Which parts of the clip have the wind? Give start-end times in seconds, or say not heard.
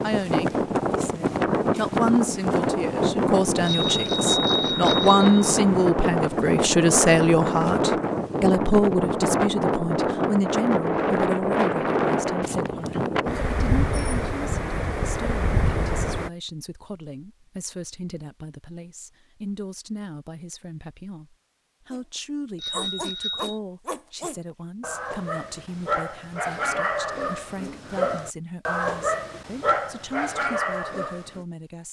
0.0-16.3.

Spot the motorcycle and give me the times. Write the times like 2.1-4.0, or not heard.
not heard.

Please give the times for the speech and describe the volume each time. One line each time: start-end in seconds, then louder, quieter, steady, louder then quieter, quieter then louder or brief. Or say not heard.
0.0-31.8 quieter.